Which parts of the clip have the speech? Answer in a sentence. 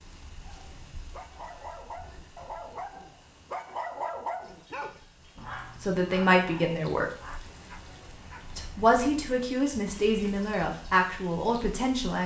The speech can be heard from 5.4 to 7.0 s and from 8.6 to 12.2 s.